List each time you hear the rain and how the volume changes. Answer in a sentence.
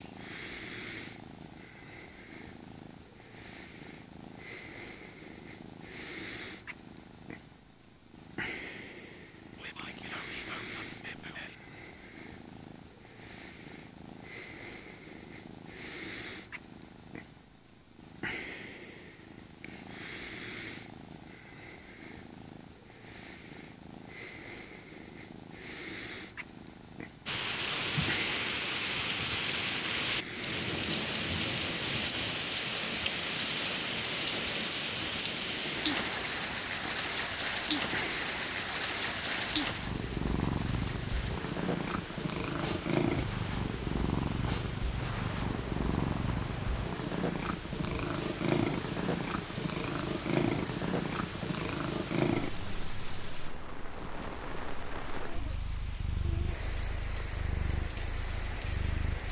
The rain can be heard from 27.2 to 59.2 s, getting quieter.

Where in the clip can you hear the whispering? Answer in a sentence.
The whispering can be heard from 9.6 to 11.6 s.